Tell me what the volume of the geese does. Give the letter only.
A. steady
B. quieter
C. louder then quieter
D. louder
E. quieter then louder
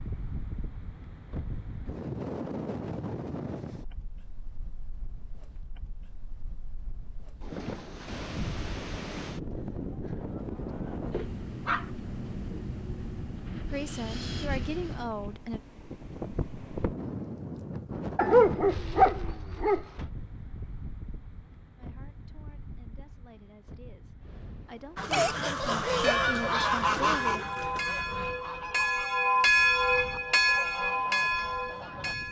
B.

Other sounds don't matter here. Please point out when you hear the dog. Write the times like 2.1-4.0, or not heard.
11.1-11.8, 18.1-20.1.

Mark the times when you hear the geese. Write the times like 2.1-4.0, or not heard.
24.9-32.1.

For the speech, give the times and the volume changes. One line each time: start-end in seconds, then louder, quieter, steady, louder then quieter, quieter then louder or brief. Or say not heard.
13.7-15.6 brief
21.8-27.5 louder.